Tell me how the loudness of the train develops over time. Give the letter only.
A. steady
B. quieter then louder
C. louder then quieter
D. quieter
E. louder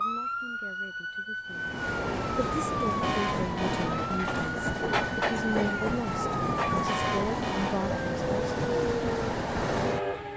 A.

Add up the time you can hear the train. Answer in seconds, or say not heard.
9 s.